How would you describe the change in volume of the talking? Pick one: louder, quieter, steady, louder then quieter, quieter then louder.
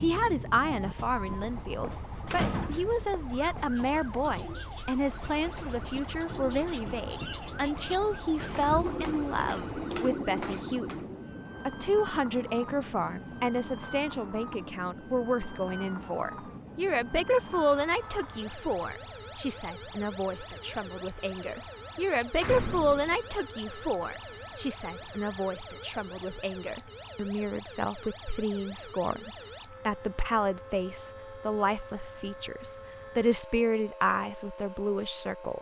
steady.